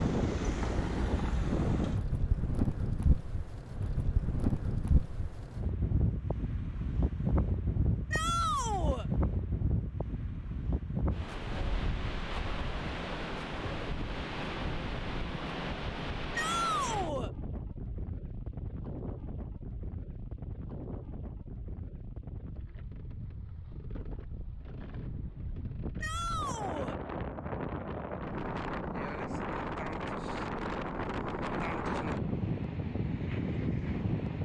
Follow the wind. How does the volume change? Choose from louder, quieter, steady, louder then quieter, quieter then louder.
quieter then louder.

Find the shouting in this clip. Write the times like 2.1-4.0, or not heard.
8.1-9.1, 16.4-17.3, 26.0-26.9.